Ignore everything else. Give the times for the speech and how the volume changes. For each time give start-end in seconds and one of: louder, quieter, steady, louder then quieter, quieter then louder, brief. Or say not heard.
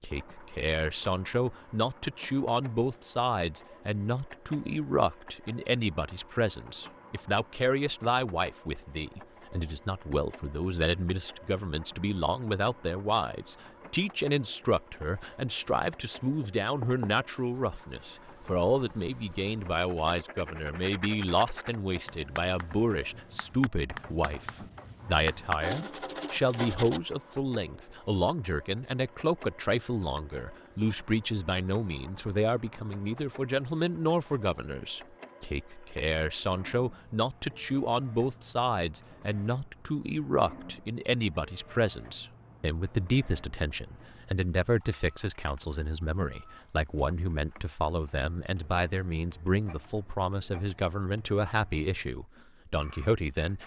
0.0-53.6 steady.